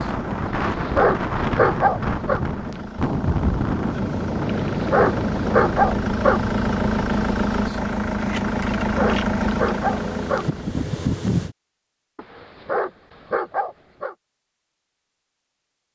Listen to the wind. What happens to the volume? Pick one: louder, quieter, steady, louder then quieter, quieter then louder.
quieter then louder.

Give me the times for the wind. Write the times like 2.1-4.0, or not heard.
0.0-11.6.